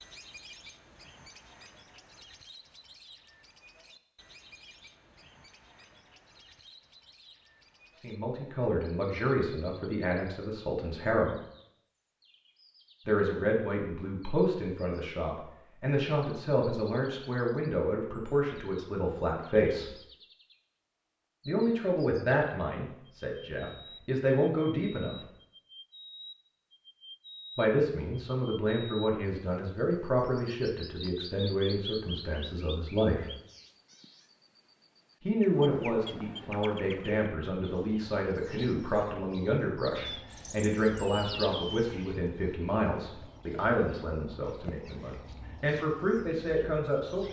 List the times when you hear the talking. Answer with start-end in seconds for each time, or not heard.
8.0-11.3, 13.1-19.9, 21.4-25.1, 27.6-33.2, 35.2-47.2.